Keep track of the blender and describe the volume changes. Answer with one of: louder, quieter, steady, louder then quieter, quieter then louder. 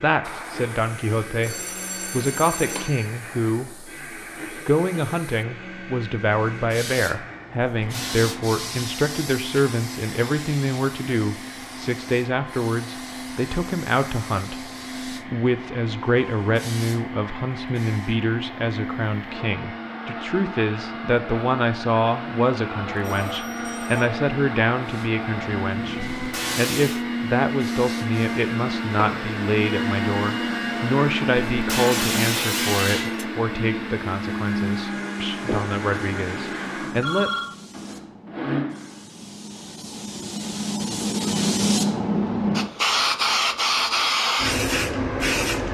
louder.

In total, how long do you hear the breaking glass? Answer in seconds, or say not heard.
3 s.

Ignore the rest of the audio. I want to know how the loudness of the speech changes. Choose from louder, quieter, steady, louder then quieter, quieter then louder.
steady.